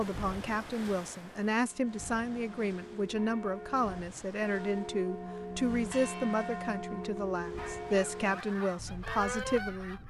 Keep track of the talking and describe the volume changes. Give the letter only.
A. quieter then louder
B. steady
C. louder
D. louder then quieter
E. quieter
B.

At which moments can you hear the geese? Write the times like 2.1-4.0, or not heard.
7.5-10.0.